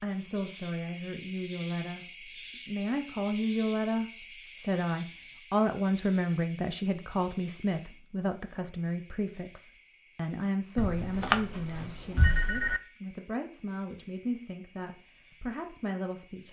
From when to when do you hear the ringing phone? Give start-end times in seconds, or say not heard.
10.8-12.8.